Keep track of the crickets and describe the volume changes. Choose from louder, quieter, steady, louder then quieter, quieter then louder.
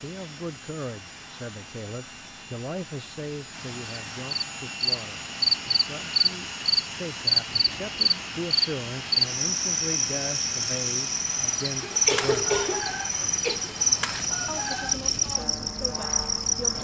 steady.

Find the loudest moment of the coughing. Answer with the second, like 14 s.
12 s.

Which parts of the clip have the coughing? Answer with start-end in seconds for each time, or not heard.
11.8-13.7.